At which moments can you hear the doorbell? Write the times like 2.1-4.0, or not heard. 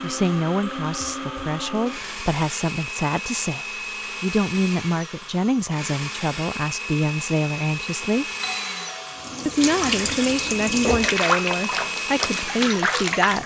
8.4-9.4.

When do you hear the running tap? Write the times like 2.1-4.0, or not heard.
9.2-13.4.